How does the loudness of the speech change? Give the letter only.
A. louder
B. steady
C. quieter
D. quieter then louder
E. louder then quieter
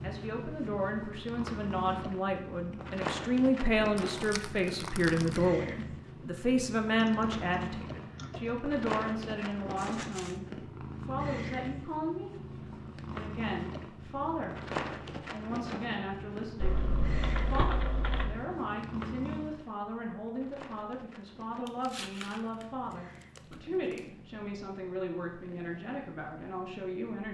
C.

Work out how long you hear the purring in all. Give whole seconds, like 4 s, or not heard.
27 s.